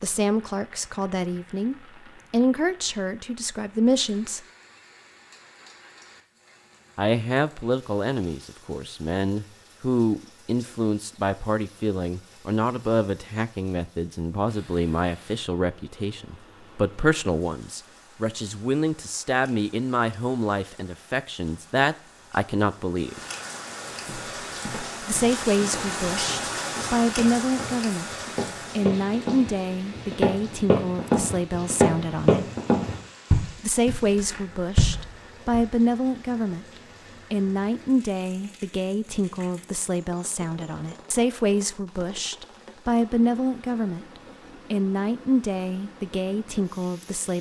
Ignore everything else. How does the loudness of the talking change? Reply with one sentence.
The volume of the talking stays about the same.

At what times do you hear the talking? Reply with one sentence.
The talking can be heard from 0.0 to 4.5 s, from 7.0 to 23.2 s, from 25.0 to 28.1 s, from 28.8 to 32.5 s, from 33.6 to 36.6 s and from 37.3 to 47.3 s.